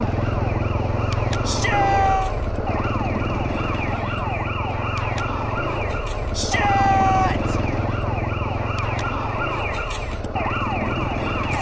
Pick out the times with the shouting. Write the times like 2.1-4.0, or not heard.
1.4-2.4, 6.3-7.6.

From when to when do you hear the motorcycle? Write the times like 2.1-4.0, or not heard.
0.0-11.5.